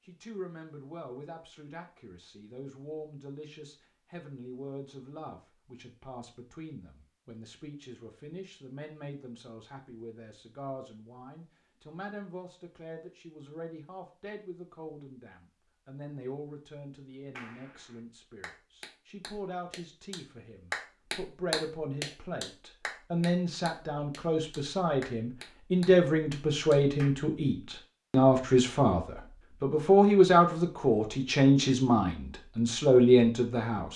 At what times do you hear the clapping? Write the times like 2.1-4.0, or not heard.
17.4-27.1.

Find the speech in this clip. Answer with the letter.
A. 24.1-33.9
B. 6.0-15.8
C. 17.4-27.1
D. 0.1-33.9
D.